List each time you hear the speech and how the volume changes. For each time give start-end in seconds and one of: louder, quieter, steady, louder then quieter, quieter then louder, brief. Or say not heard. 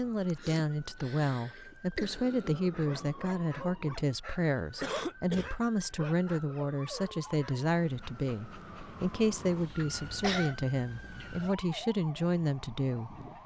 0.0-13.2 steady.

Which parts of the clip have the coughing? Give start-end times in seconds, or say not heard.
0.3-2.6, 4.8-5.5, 9.8-10.6.